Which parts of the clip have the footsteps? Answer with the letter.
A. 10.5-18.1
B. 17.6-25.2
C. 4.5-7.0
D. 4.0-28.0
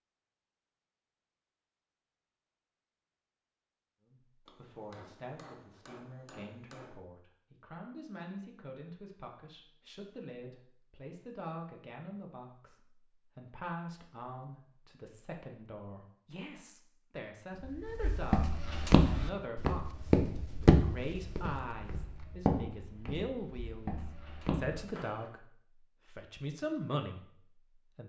B.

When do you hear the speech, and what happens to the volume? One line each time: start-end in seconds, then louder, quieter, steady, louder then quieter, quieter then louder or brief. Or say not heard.
4.0-28.0 louder.